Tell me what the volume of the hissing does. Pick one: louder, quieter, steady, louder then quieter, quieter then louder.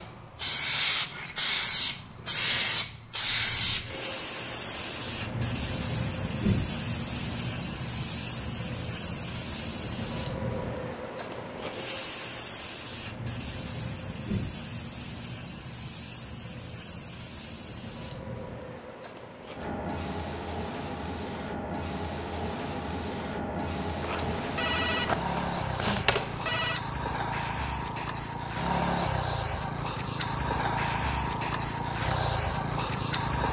quieter then louder.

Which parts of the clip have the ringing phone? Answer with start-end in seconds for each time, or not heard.
24.0-26.8.